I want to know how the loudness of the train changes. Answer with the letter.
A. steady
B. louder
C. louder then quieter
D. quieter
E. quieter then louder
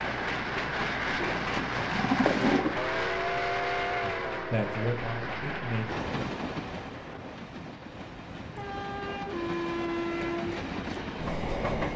E.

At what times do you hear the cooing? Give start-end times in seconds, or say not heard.
1.2-2.8.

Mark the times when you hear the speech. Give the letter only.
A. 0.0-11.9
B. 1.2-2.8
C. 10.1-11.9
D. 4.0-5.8
D.